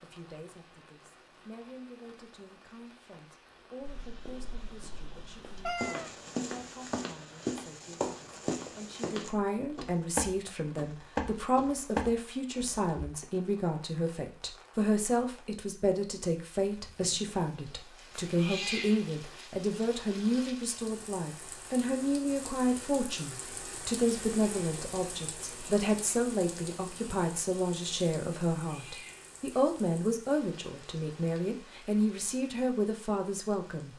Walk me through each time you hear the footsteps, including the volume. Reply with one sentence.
You can hear the footsteps from 3.8 to 12.9 s, getting louder.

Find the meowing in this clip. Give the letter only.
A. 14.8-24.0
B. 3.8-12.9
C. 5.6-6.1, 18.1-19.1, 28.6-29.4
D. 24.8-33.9
C.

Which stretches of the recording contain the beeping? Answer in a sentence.
You can't hear the beeping here.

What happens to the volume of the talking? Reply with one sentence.
The volume of the talking goes up.